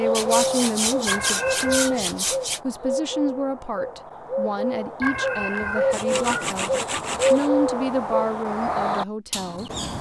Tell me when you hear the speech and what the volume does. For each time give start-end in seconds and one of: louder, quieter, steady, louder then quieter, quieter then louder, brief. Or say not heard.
0.0-9.7 steady.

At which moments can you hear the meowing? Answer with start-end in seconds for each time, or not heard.
1.1-2.0, 5.0-6.5.